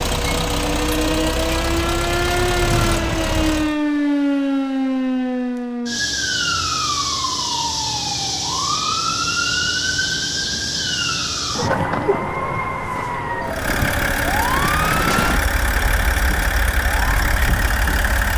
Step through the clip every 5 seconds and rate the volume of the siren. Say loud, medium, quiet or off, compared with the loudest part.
loud, loud, loud, medium.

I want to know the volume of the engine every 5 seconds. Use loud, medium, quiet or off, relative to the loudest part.
loud, off, loud, loud.